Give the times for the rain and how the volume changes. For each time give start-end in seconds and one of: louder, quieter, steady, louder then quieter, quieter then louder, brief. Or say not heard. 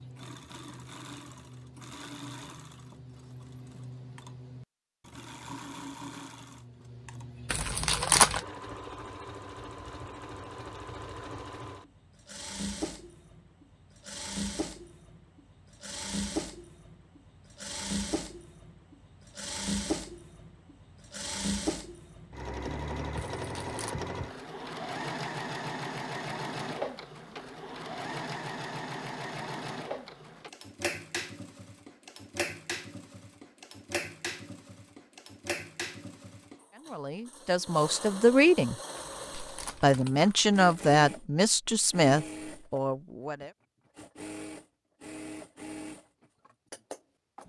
not heard.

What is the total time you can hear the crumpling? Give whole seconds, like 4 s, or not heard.
4 s.